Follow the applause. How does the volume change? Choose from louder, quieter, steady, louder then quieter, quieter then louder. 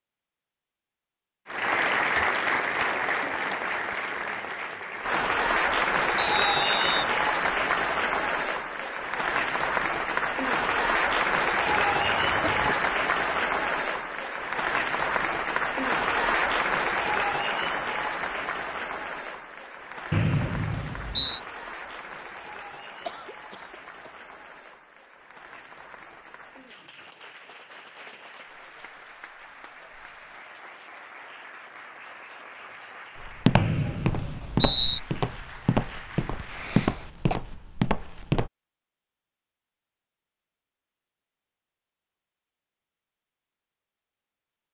quieter.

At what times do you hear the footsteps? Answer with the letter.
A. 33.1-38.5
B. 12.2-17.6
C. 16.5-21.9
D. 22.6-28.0
A.